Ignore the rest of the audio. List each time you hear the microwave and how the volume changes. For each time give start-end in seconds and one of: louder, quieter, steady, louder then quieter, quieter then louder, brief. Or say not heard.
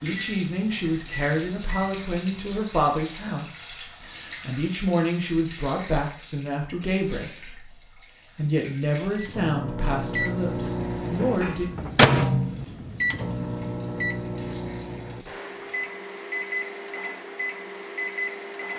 0.1-2.6 brief
9.2-18.7 louder then quieter.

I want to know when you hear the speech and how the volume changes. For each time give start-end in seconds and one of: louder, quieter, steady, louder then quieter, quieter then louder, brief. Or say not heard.
0.0-11.7 steady.